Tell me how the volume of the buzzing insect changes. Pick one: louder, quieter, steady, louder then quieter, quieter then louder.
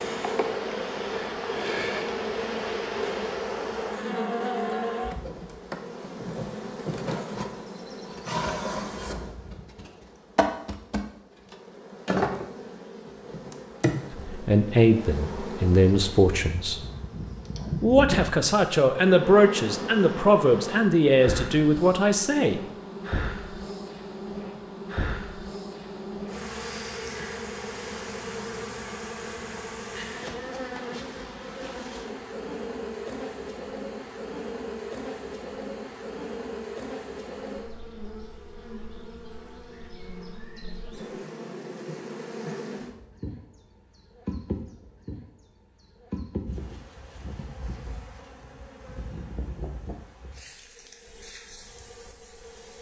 quieter.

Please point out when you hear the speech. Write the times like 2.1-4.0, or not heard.
14.1-16.8, 17.8-22.6.